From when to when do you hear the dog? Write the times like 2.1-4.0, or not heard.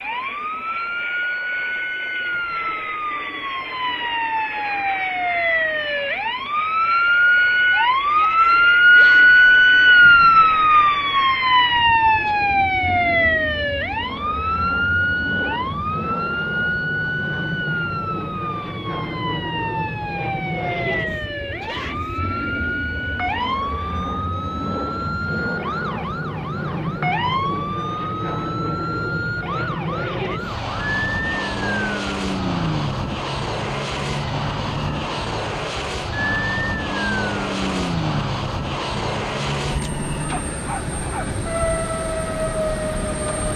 39.8-41.3.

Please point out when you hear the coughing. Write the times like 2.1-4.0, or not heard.
not heard.